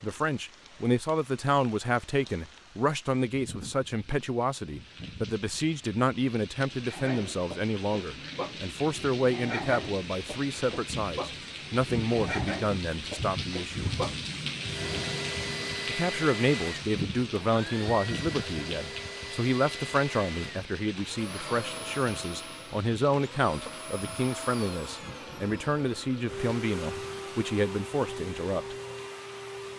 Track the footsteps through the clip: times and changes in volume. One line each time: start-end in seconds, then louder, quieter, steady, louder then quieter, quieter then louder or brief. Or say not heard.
not heard.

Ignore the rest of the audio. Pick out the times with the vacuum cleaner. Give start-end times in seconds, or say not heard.
14.6-29.7.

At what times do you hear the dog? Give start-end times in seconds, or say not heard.
6.8-14.2.